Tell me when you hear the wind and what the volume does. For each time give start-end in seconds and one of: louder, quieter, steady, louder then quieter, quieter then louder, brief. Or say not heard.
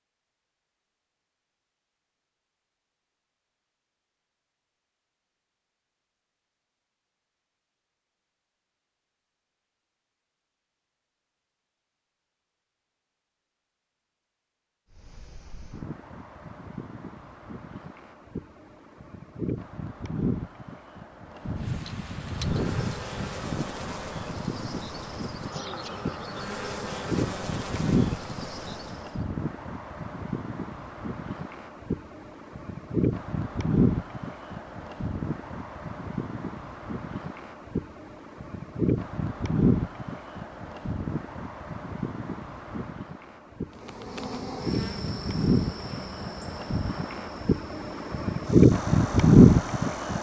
14.9-50.1 louder.